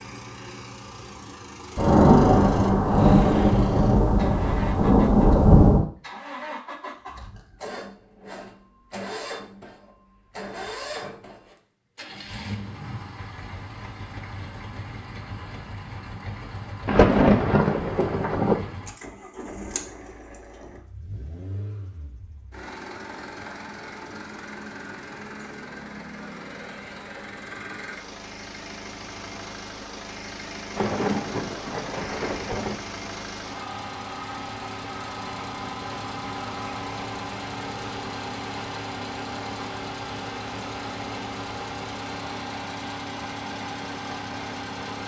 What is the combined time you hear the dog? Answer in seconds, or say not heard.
not heard.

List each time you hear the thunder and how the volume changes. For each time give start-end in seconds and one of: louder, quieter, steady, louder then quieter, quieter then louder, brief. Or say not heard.
1.8-5.8 quieter then louder
16.9-18.6 brief
30.8-32.8 brief.